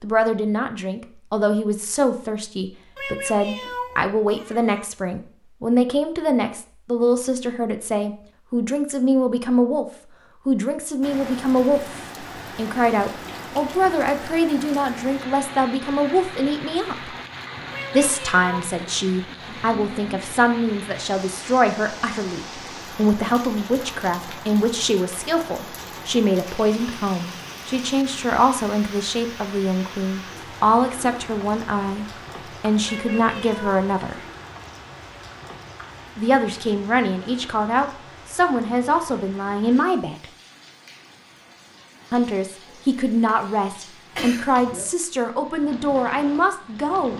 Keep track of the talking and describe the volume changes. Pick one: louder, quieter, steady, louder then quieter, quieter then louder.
steady.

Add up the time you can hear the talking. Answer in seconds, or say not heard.
42 s.